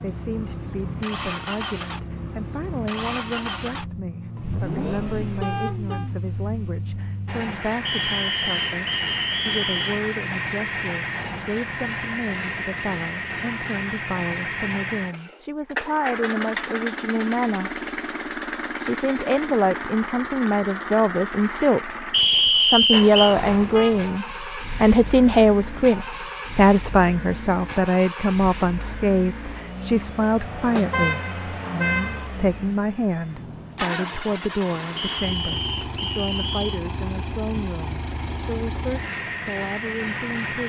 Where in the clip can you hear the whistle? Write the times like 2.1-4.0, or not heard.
7.8-10.0, 22.1-23.4, 35.0-36.8.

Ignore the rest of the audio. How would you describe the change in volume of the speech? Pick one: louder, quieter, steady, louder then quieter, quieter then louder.
louder then quieter.